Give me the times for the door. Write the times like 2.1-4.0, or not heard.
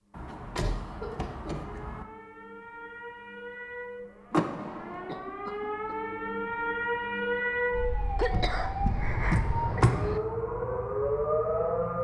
0.1-2.0, 4.3-5.2, 8.3-9.9.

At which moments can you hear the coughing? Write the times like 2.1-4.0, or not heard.
0.6-1.7, 4.9-6.2, 8.2-10.2.